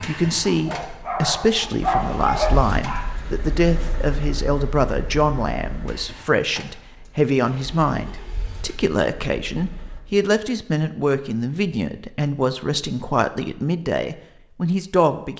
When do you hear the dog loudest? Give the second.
2 s.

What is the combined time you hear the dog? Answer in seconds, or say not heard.
3 s.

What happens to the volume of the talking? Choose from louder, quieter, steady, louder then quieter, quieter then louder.
steady.